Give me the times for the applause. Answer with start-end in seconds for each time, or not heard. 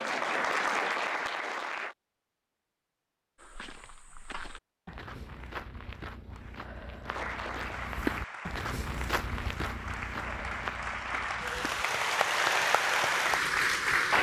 0.0-1.9, 7.0-14.1.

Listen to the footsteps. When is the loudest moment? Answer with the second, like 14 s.
8 s.